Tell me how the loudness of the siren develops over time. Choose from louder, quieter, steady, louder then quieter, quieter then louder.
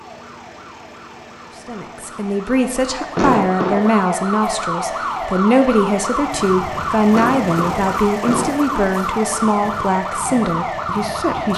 louder.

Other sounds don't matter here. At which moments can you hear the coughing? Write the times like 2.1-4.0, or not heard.
3.1-3.9, 7.1-8.9.